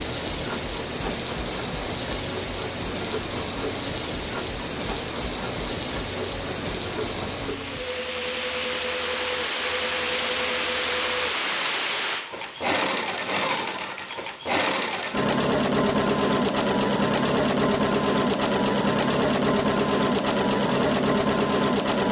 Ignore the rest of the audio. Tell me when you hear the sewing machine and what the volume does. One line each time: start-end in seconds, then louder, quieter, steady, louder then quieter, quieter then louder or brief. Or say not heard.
0.0-22.0 louder.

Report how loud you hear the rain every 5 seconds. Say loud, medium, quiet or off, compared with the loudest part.
loud, loud, loud, off, off.